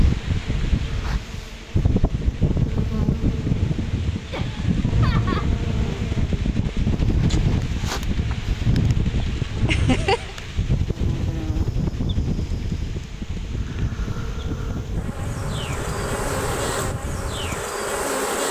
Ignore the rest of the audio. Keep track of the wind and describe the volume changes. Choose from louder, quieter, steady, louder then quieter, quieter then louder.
quieter.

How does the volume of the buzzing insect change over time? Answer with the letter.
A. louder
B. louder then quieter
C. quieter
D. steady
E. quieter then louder
A.